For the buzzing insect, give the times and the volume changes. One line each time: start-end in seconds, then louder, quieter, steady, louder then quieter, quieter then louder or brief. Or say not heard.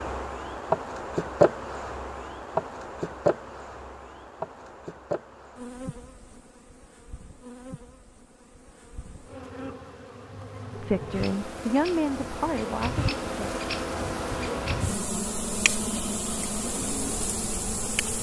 0.0-18.1 quieter then louder.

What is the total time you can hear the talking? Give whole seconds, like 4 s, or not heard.
3 s.